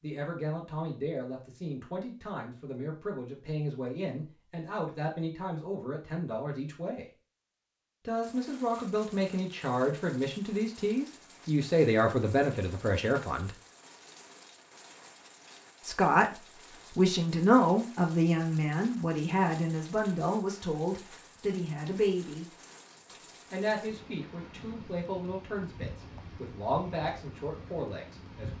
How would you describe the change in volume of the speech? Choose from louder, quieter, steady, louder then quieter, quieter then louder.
louder then quieter.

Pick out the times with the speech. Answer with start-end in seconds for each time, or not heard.
0.0-7.0, 8.1-13.5, 15.8-22.6, 23.5-28.5.